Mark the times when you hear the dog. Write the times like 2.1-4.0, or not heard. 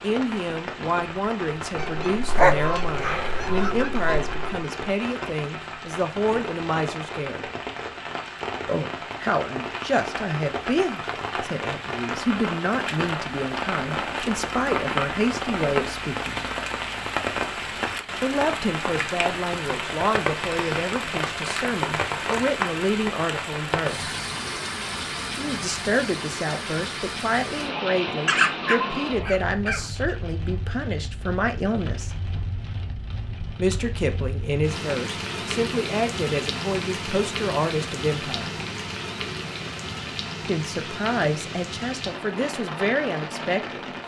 2.4-3.8, 28.2-29.9.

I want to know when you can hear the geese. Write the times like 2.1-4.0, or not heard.
1.8-4.7.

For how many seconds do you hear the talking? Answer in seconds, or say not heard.
36 s.